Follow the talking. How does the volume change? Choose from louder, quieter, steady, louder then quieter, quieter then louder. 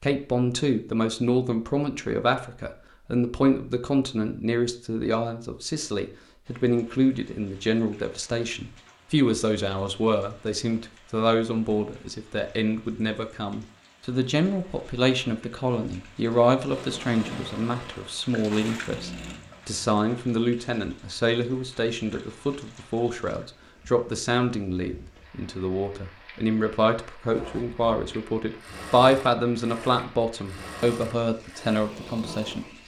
steady.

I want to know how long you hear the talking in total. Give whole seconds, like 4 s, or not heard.
33 s.